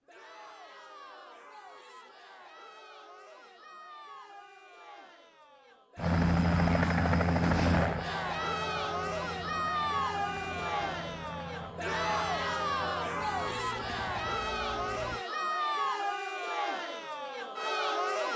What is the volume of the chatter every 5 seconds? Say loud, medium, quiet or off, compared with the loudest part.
quiet, loud, loud, loud.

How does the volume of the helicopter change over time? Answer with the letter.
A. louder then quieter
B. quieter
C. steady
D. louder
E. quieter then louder
B.